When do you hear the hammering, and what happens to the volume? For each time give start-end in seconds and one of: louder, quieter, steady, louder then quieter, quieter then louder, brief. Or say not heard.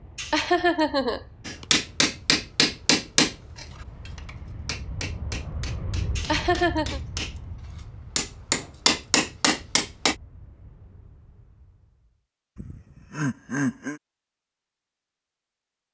1.4-10.2 quieter then louder.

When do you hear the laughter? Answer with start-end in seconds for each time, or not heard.
0.1-1.6, 6.2-7.0, 12.6-14.0.